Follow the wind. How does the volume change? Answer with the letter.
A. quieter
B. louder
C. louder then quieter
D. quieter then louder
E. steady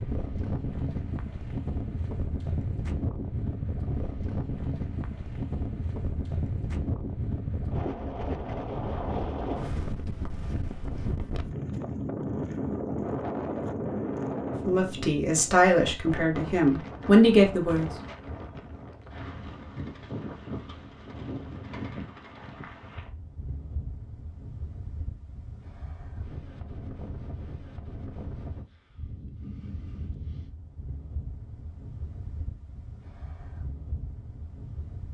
A.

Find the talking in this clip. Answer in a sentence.
You can hear the talking from 14.7 to 17.9 s.